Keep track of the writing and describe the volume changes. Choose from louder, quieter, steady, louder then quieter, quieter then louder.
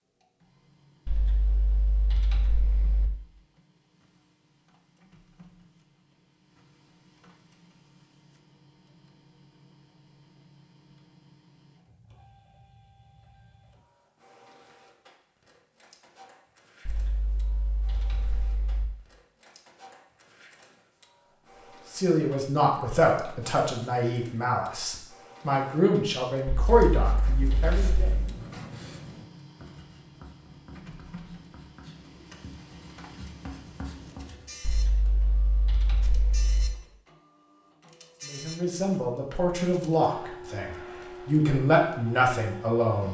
quieter then louder.